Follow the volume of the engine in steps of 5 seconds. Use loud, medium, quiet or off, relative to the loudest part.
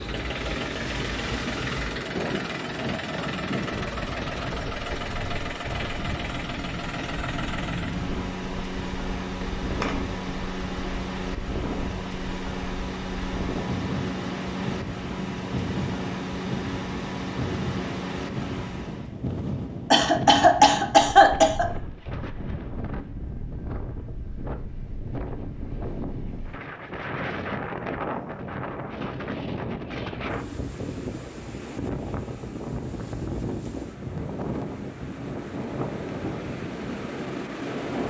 loud, loud, loud, loud, off, off, off, off.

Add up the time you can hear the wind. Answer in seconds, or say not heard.
38 s.